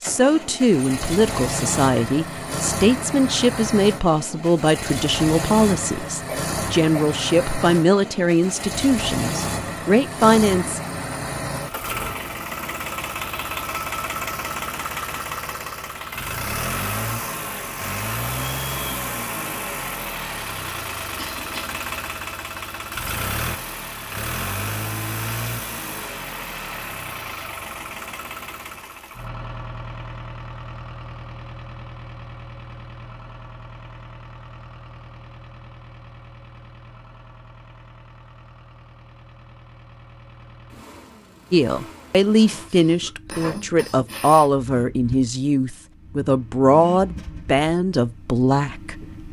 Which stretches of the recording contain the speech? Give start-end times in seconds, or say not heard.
0.0-10.8, 41.5-49.2.